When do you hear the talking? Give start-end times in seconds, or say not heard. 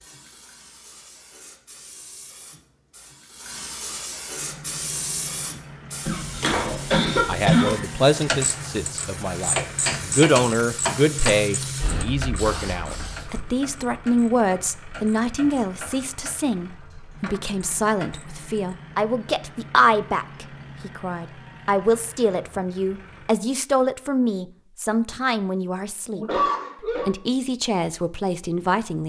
7.1-29.0.